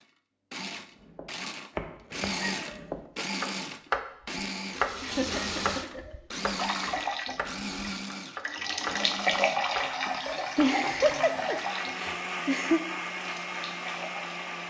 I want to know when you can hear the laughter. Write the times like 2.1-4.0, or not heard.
2.4-2.9, 5.0-6.2, 10.1-12.8.